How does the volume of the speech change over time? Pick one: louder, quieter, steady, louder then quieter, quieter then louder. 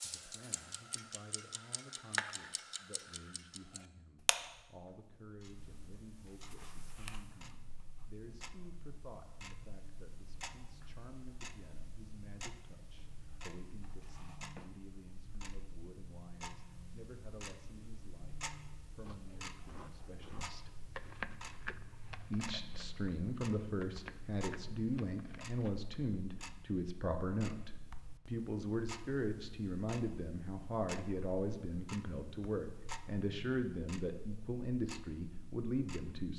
louder.